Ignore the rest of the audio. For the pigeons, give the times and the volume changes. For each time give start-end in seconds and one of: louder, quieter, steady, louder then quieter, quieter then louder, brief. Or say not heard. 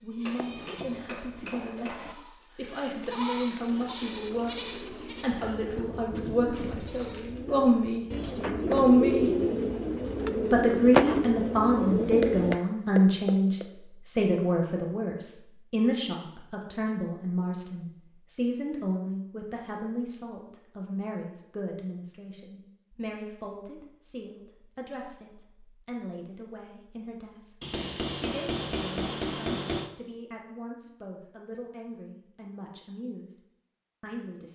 3.6-12.6 louder.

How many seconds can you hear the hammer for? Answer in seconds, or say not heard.
6 s.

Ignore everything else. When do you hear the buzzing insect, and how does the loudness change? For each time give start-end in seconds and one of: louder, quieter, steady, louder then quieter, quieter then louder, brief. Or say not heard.
not heard.